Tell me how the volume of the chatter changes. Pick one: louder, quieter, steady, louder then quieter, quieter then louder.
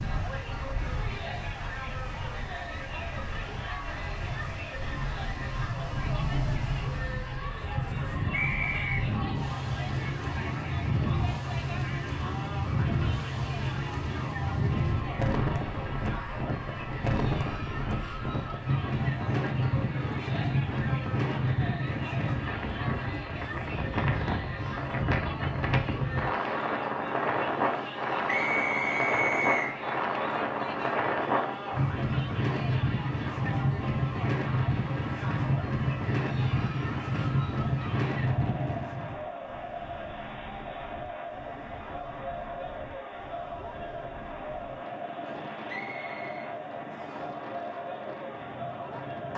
steady.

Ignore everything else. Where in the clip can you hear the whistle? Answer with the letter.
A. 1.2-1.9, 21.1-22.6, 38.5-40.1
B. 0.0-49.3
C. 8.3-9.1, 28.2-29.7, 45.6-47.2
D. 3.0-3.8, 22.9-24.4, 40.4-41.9
C.